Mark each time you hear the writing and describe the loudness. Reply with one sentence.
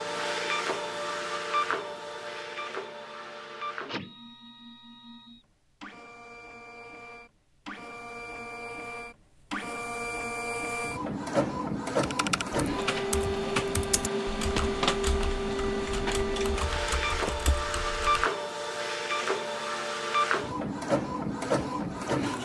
The writing can't be heard in this clip.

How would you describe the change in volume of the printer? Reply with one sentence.
The volume of the printer goes down, then up.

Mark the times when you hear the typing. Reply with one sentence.
You can hear the typing from 12.0 to 18.3 s.